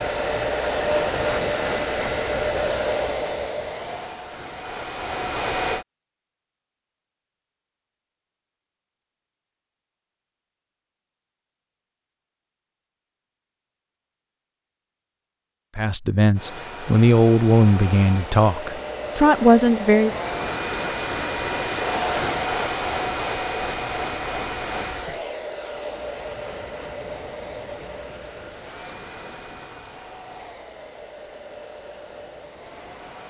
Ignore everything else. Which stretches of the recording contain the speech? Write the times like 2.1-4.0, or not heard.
15.8-20.1.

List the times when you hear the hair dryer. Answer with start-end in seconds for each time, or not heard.
0.0-5.8, 16.4-33.2.